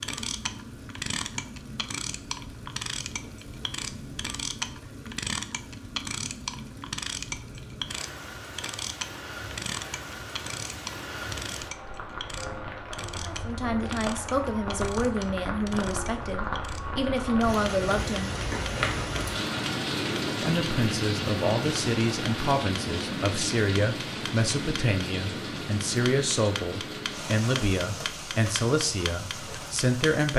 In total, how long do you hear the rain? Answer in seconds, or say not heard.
30 s.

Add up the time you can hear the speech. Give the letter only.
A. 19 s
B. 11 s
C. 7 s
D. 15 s
D.